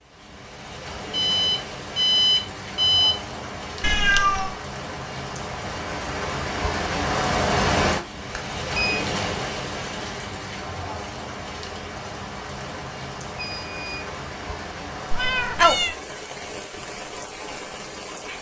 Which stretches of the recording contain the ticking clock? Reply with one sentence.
You can't hear the ticking clock here.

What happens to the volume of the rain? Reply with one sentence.
The volume of the rain goes up, then down.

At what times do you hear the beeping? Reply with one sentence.
The beeping can be heard from 1.1 to 3.1 s, from 8.3 to 9.1 s and from 13.3 to 14.1 s.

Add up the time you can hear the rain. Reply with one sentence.
You can hear the rain for 18 seconds altogether.